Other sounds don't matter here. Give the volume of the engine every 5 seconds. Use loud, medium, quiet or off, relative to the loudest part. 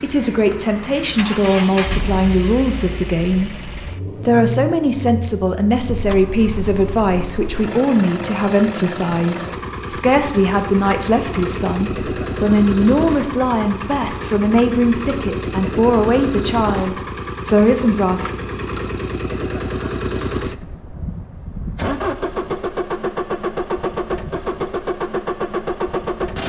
medium, medium, loud, loud, loud, loud.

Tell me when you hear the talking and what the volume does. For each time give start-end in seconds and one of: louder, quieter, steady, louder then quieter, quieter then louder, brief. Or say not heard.
0.0-18.3 steady.